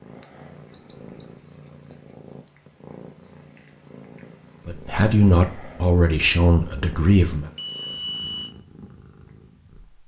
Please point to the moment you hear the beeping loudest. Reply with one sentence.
The loudest moment of the beeping is at 8 seconds.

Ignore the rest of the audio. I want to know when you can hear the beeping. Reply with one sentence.
The beeping can be heard from 0.7 to 1.5 s and from 7.5 to 8.5 s.